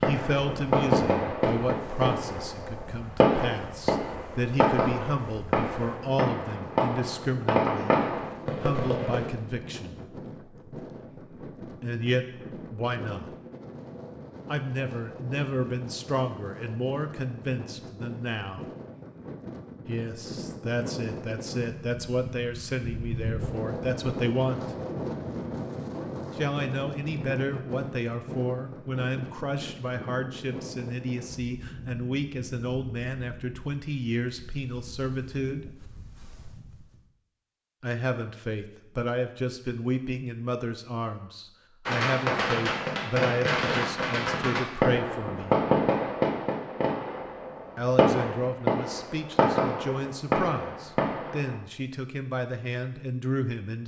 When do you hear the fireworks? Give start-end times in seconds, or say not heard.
0.0-9.3, 41.9-51.5.